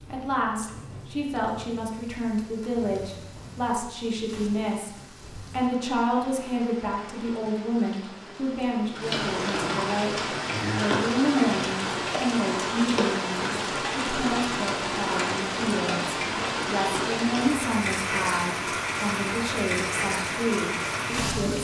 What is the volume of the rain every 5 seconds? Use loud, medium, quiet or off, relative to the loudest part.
quiet, medium, loud, loud, loud.